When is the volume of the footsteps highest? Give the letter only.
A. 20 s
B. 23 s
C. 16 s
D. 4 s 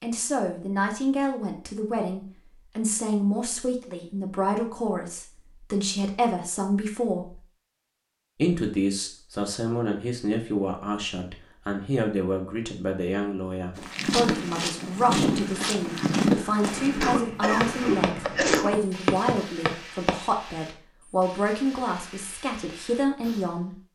C.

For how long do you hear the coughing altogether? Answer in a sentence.
You can hear the coughing for 2 seconds altogether.